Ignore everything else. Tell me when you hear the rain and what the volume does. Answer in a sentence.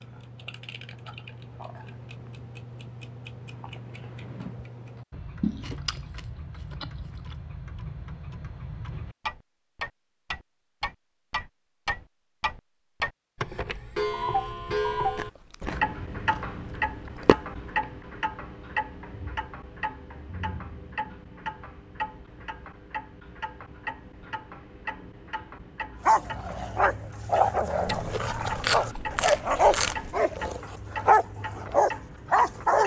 The rain can't be heard in this clip.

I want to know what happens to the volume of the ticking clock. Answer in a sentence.
The loudness of the ticking clock goes up, then down.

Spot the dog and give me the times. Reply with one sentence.
The dog can be heard from 26.0 to 32.8 s.